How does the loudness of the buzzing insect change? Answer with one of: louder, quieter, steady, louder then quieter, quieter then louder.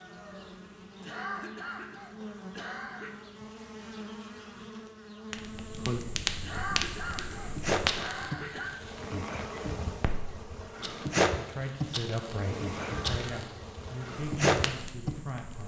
louder.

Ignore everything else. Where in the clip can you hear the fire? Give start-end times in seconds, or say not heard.
5.3-15.6.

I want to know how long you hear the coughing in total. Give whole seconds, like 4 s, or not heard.
5 s.